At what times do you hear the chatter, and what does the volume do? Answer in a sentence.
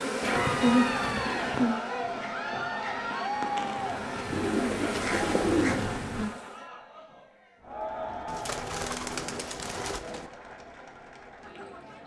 The chatter can be heard from 0.1 to 12.0 s, getting quieter.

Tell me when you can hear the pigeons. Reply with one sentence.
You can hear the pigeons from 0.2 to 1.8 s, from 4.3 to 6.3 s and from 8.2 to 10.3 s.